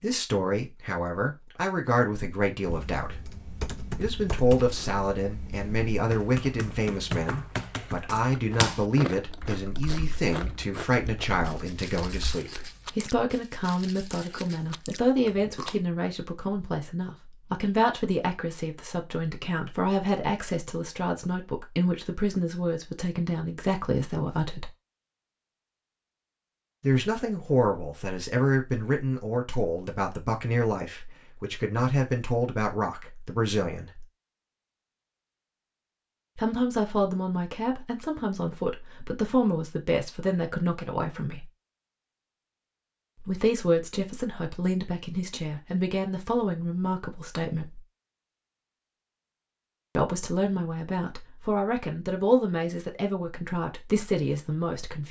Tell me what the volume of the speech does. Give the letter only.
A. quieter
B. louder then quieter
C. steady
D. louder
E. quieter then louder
C.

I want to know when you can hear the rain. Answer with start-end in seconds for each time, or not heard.
not heard.